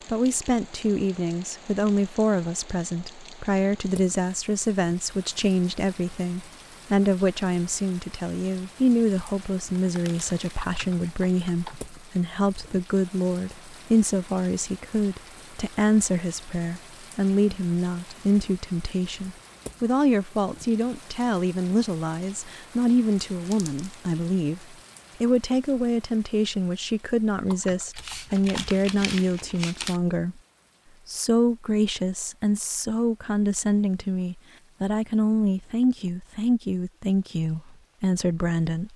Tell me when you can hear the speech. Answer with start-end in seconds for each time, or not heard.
0.1-30.4, 31.1-38.9.